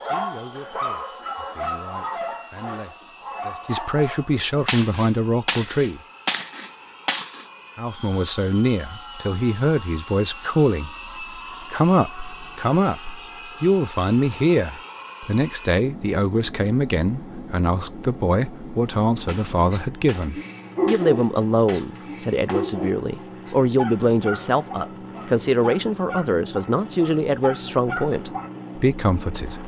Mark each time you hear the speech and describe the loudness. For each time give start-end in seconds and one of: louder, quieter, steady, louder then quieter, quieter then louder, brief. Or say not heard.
0.0-6.0 louder
7.8-29.6 steady.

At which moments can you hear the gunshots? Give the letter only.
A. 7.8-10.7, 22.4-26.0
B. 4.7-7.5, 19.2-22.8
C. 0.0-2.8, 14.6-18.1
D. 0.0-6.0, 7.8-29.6
B.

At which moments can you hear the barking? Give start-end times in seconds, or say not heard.
0.0-4.7, 19.7-28.5.